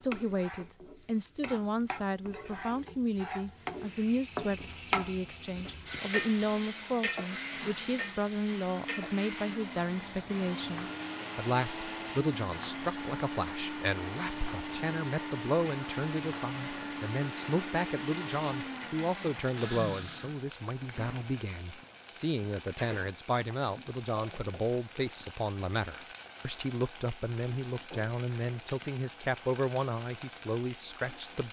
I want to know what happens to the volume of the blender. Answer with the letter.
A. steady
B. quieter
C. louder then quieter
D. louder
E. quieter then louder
D.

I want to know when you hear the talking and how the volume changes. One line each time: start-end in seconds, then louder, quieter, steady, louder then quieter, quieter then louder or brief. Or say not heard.
0.0-31.4 steady.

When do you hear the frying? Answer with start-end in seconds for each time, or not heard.
0.0-31.4.